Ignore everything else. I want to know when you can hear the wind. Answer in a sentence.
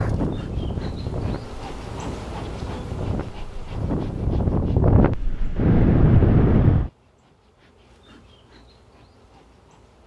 You can hear the wind from 0.0 to 6.9 s.